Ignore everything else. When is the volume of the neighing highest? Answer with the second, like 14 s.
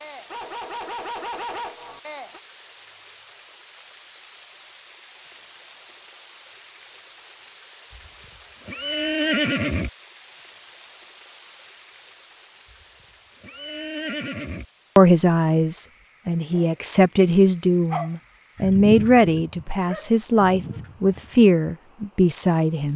9 s.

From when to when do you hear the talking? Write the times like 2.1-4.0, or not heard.
14.9-22.9.